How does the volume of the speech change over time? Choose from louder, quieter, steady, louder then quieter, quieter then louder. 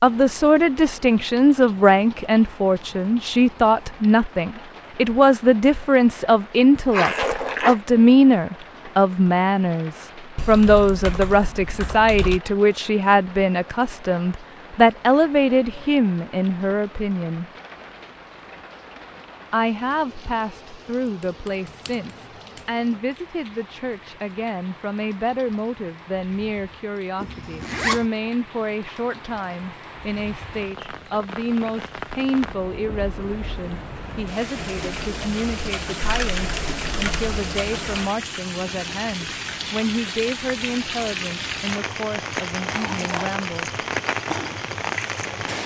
quieter.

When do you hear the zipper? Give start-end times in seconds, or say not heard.
6.9-7.8, 27.2-28.1, 42.6-43.4.